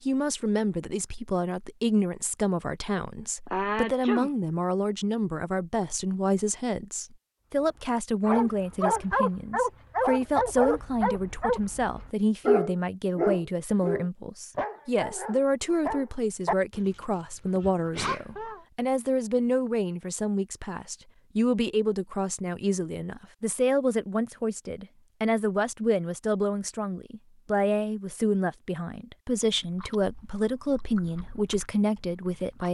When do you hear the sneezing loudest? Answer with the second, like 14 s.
4 s.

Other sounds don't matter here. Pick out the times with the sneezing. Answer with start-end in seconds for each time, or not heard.
3.5-4.3, 17.9-18.6.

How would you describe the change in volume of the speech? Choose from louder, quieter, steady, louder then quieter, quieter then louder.
steady.